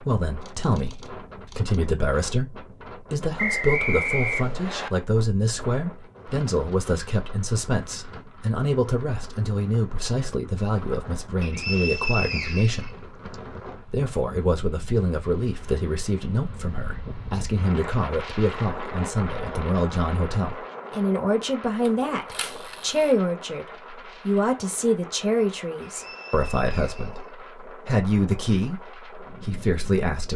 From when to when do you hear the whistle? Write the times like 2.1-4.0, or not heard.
3.4-4.9, 11.4-13.3, 25.8-27.4.